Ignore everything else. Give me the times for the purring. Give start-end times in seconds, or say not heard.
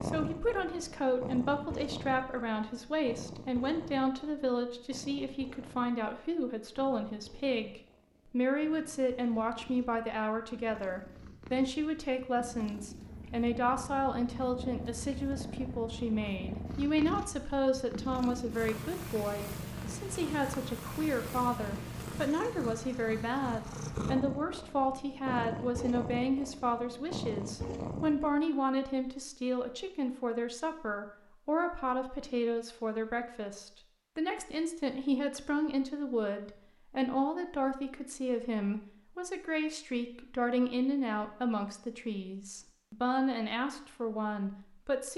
0.0-28.3.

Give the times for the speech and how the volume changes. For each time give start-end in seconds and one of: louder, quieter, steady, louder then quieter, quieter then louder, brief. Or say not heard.
0.0-45.1 steady.